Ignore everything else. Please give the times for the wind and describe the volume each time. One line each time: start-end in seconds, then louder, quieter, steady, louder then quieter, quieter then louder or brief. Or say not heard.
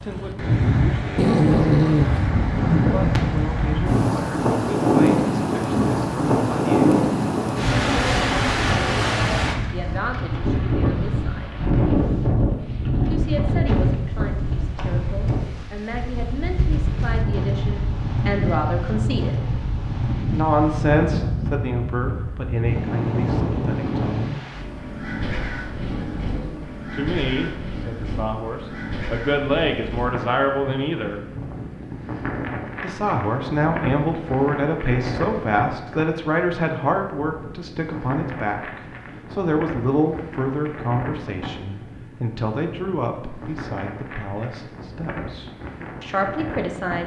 0.0-47.0 quieter.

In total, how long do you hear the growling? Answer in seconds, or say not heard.
2 s.